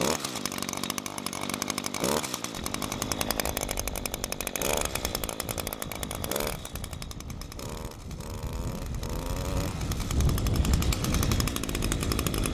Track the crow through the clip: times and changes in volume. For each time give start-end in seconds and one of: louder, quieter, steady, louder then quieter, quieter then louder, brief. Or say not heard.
not heard.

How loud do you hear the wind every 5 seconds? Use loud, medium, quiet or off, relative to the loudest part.
quiet, medium, loud.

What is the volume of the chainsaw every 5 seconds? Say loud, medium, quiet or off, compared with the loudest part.
loud, medium, loud.